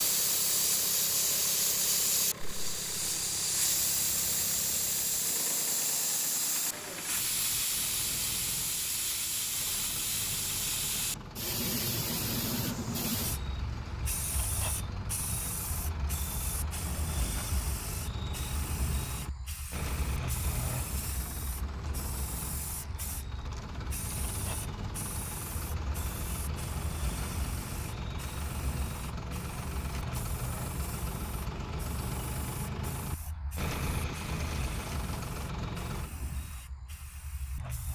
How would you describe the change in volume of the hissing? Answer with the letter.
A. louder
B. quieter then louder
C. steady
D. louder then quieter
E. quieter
E.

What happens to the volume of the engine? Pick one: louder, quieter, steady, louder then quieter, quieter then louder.
louder.